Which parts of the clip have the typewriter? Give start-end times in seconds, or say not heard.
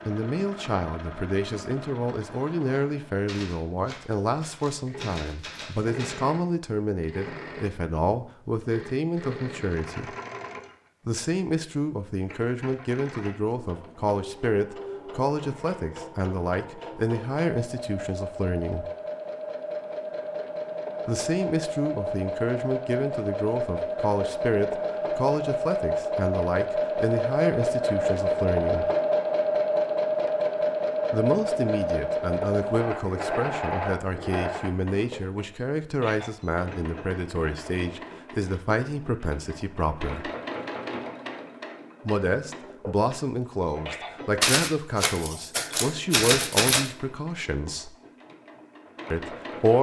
3.2-6.2, 44.4-46.9.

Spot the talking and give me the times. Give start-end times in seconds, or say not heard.
0.1-10.2, 11.1-18.9, 21.1-28.9, 31.1-40.3, 42.0-48.0, 49.1-49.7.